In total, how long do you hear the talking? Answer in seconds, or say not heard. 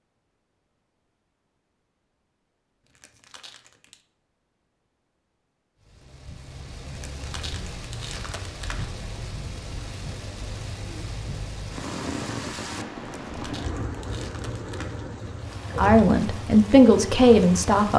2 s.